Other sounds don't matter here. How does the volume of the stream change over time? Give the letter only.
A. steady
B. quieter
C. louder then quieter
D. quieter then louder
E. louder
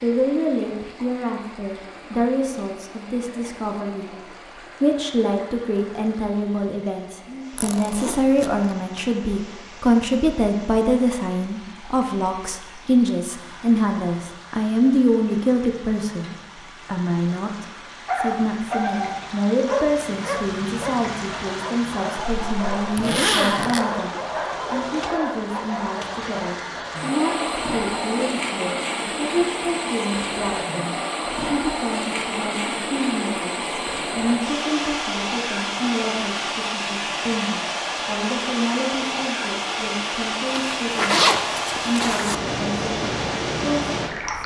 E.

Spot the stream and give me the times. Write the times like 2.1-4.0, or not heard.
0.0-44.4.